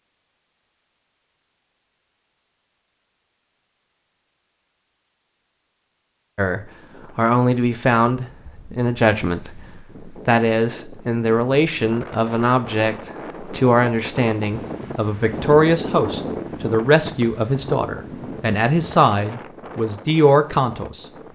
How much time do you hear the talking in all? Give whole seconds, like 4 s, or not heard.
15 s.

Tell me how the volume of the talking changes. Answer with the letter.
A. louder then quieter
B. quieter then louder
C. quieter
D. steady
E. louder
D.